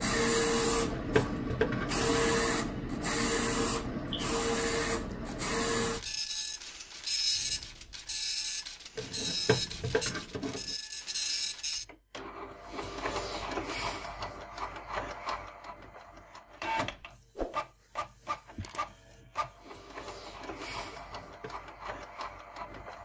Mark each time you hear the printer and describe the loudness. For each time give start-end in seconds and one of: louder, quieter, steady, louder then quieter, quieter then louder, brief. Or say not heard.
0.0-23.0 quieter.